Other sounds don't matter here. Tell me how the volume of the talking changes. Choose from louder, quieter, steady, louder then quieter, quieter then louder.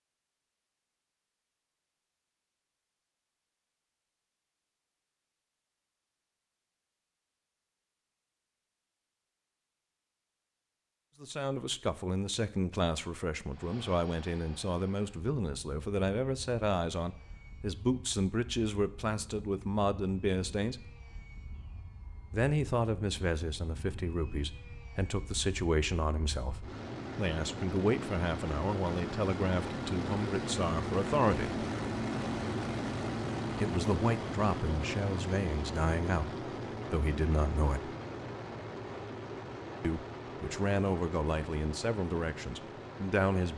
steady.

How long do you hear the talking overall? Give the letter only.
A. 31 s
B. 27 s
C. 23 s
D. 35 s
B.